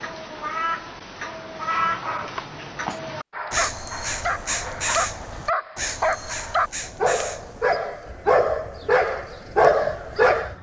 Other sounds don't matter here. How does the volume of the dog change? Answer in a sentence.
The loudness of the dog goes up.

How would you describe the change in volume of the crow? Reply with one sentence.
The volume of the crow goes down.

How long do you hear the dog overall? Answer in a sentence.
You can hear the dog for 9 seconds altogether.